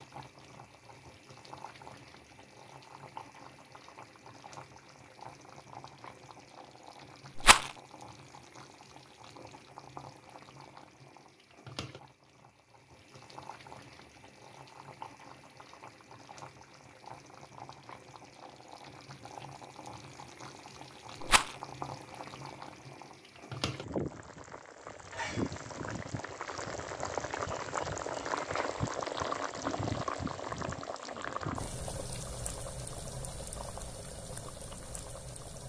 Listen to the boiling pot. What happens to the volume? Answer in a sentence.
The loudness of the boiling pot goes up.